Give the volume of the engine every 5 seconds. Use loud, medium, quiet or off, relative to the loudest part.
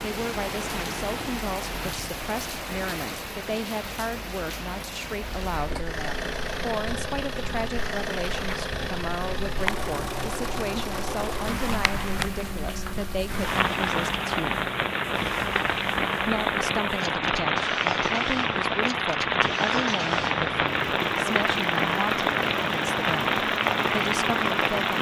off, loud, loud, medium, loud.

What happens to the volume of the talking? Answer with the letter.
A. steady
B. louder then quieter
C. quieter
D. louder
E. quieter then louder
A.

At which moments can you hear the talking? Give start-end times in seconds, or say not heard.
0.0-14.6, 16.2-24.9.